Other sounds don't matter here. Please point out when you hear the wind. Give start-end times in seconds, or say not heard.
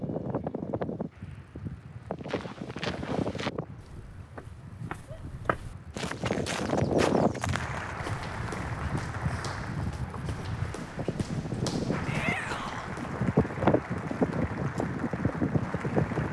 0.0-16.2.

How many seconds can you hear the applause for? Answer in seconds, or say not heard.
9 s.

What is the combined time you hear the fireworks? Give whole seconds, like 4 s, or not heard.
not heard.